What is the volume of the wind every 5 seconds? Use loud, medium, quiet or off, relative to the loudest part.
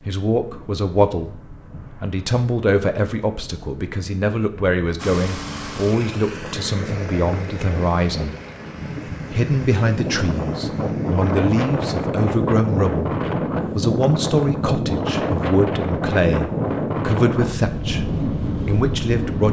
quiet, medium, loud, loud.